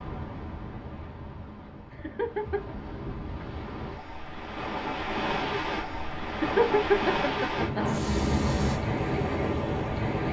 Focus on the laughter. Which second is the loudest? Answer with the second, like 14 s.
7 s.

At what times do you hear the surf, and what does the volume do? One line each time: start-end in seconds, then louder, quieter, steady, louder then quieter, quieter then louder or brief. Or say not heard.
0.0-10.2 louder.